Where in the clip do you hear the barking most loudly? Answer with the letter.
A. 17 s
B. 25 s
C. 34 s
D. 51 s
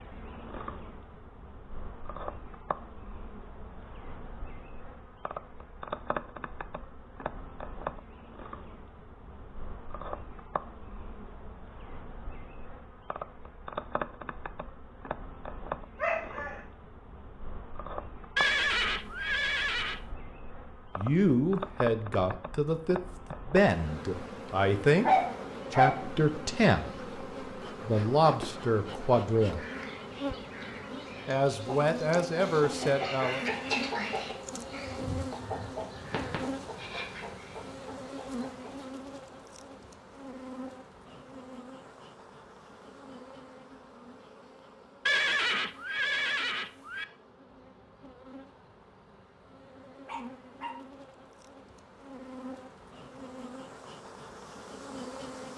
B.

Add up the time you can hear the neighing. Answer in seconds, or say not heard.
4 s.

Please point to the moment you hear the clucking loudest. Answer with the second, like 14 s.
34 s.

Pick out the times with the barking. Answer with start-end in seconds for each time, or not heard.
16.0-16.6, 25.0-26.1, 50.0-50.7.